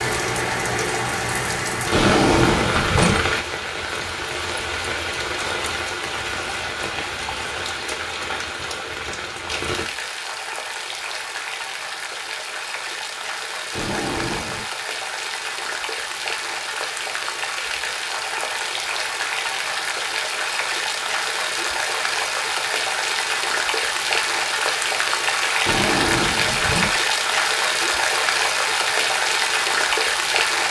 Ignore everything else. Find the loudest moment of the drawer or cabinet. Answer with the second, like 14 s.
2 s.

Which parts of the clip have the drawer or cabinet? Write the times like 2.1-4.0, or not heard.
1.9-3.2, 13.8-14.7, 25.6-26.9.